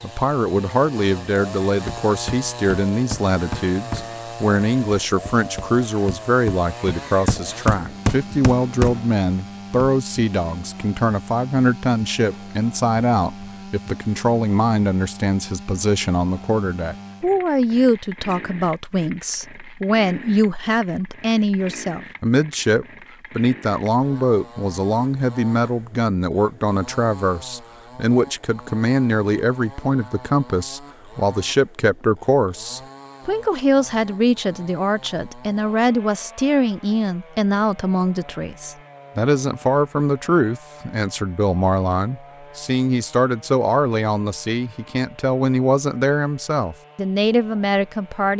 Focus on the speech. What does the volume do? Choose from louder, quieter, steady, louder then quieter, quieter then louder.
steady.